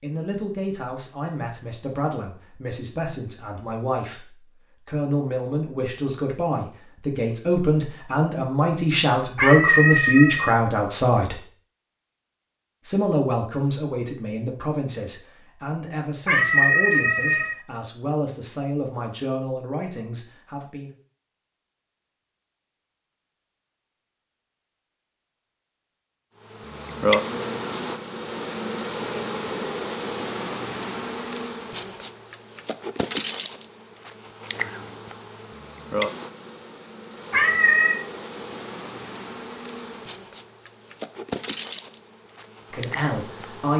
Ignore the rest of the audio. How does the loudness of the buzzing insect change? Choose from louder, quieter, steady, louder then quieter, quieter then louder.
quieter.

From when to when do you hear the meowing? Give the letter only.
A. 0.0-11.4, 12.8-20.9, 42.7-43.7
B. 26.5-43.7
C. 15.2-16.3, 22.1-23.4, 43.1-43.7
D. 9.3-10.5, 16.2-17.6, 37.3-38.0
D.